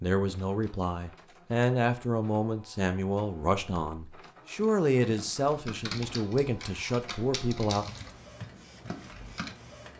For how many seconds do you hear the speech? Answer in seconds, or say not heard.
8 s.